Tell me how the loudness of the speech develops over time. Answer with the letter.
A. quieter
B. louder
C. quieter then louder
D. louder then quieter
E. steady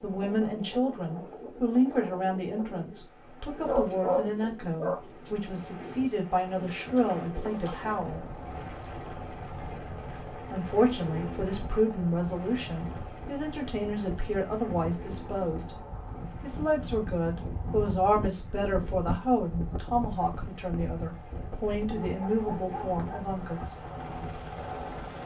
E.